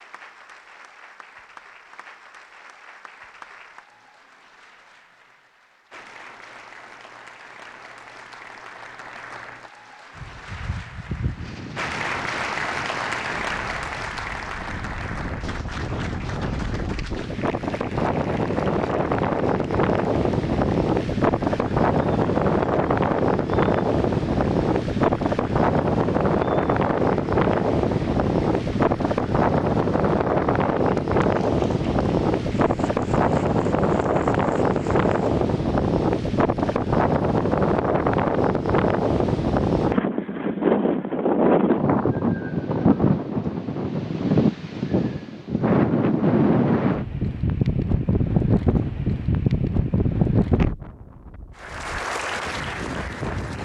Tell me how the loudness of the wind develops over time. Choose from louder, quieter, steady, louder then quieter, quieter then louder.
louder.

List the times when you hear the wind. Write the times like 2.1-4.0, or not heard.
10.2-53.6.